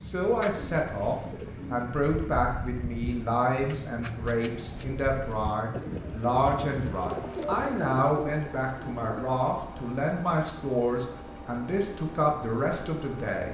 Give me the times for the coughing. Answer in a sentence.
The coughing can't be heard in this clip.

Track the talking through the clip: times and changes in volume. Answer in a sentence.
The talking can be heard from 0.0 to 13.5 s, at a steady volume.